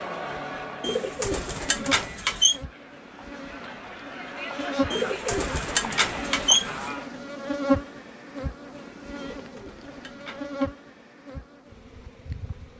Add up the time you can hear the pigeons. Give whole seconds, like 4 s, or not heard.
5 s.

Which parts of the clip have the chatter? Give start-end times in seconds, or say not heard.
0.0-7.1.